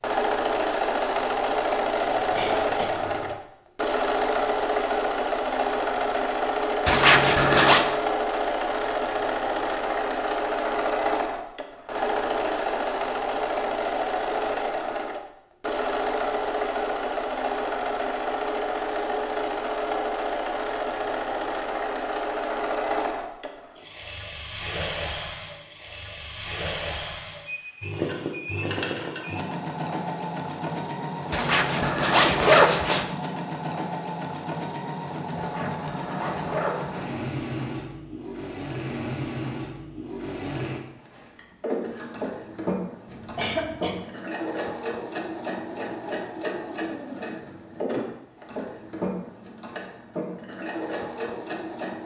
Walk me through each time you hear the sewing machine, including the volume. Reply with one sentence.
You can hear the sewing machine from 0.0 to 52.0 s, getting quieter.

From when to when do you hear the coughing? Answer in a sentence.
The coughing can be heard from 2.0 to 3.4 s and from 43.0 to 44.0 s.